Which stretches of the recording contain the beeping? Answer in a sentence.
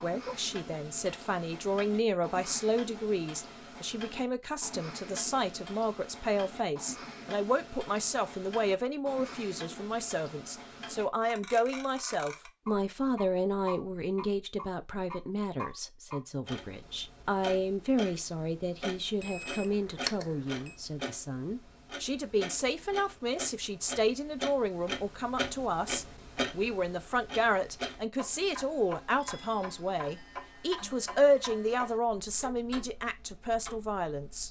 The beeping can be heard from 19.2 to 20.8 s.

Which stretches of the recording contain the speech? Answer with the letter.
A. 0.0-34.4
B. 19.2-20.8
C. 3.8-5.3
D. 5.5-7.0
A.